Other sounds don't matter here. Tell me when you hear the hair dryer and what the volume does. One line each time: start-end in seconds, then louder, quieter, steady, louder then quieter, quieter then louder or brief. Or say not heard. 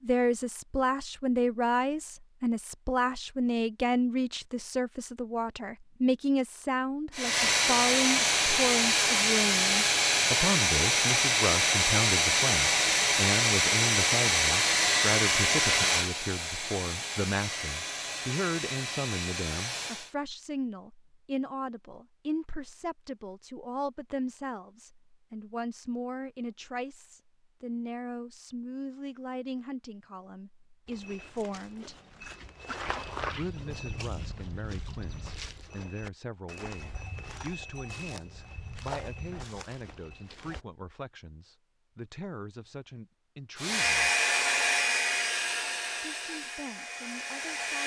7.1-20.1 quieter
43.5-47.8 quieter.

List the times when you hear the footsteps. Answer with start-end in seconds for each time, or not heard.
30.9-40.6.